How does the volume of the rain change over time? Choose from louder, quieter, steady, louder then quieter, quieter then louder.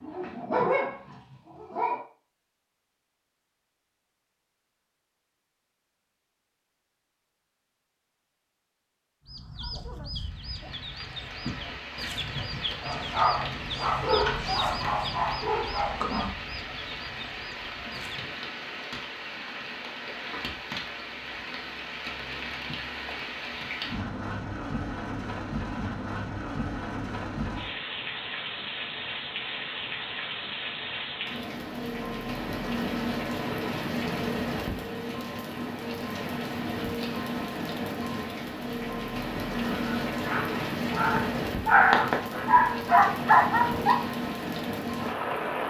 louder.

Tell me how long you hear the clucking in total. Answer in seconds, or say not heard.
9 s.